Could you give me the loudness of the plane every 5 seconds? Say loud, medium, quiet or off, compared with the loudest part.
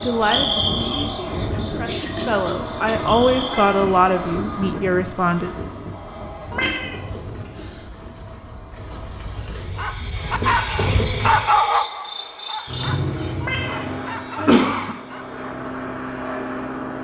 loud, medium, loud, loud.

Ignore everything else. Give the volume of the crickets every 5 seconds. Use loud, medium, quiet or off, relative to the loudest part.
medium, medium, loud, off.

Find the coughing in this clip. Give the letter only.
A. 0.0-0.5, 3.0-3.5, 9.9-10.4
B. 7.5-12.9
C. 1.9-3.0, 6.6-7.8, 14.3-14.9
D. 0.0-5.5
C.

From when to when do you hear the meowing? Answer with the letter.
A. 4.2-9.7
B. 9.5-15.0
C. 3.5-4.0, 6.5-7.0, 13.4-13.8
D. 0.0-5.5
C.